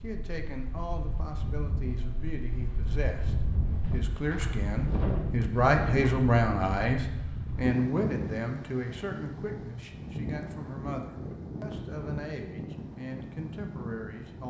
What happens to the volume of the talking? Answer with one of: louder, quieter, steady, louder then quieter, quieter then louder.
louder then quieter.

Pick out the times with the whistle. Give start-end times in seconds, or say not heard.
not heard.